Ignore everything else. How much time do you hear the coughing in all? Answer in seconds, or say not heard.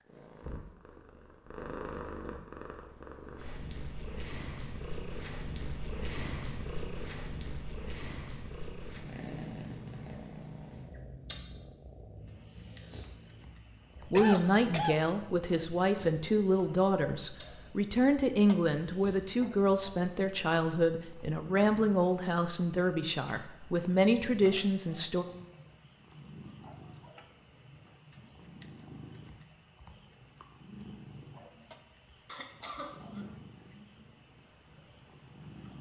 2 s.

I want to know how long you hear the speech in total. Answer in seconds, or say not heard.
11 s.